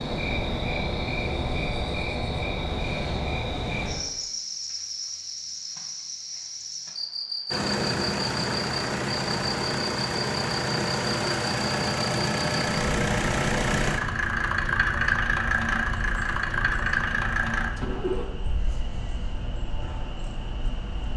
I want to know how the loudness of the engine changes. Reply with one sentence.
The loudness of the engine stays about the same.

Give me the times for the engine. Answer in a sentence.
The engine can be heard from 7.5 to 18.2 s.